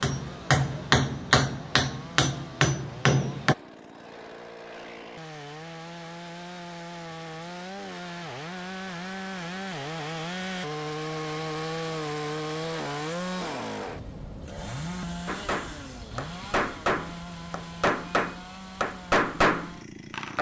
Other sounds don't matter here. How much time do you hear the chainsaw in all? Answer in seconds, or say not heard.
20 s.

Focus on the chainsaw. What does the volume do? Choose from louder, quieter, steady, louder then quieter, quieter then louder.
louder then quieter.